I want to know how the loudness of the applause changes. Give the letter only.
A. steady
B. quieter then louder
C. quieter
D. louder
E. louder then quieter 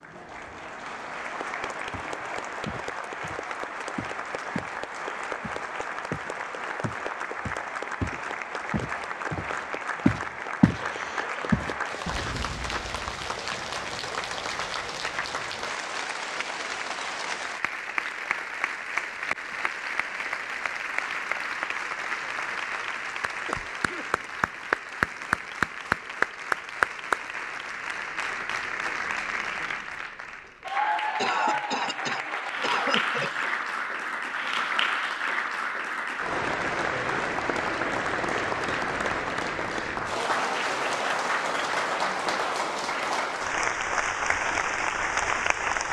D.